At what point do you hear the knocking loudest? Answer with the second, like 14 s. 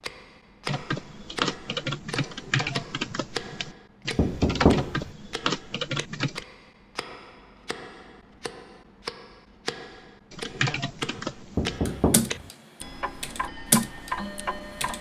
5 s.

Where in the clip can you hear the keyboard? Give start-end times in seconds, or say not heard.
0.7-6.5, 10.3-14.9.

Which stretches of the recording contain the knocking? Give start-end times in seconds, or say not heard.
4.2-5.1, 11.6-12.4.